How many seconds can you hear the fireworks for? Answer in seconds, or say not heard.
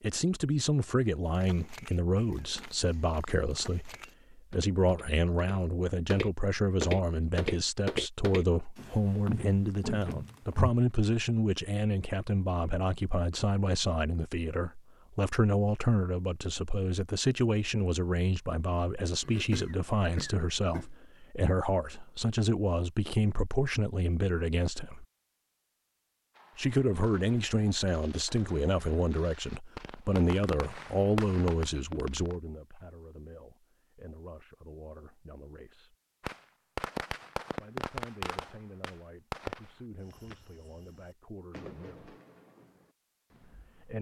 14 s.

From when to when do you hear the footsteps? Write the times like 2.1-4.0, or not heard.
1.2-10.7.